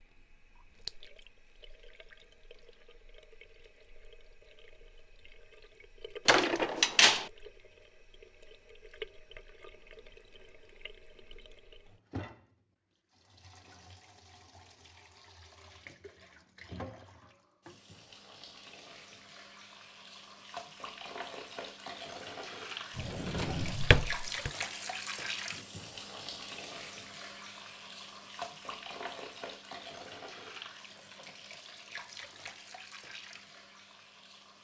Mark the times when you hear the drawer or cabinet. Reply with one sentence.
The drawer or cabinet can be heard from 6.2 to 7.3 s and from 22.9 to 24.5 s.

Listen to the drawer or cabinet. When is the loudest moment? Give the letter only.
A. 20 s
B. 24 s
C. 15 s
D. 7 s
D.